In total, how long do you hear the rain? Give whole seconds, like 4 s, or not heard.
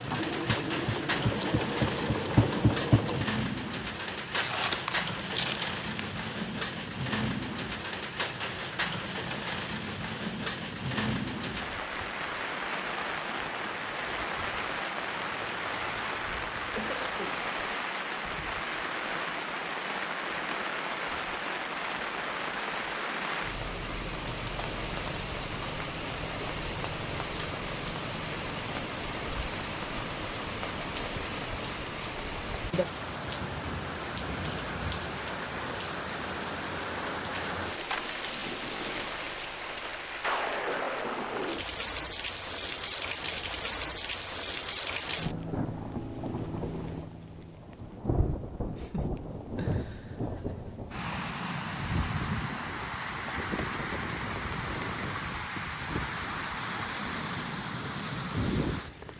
59 s.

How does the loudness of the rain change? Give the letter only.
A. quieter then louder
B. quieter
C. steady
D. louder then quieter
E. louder
C.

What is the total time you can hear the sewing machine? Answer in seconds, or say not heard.
3 s.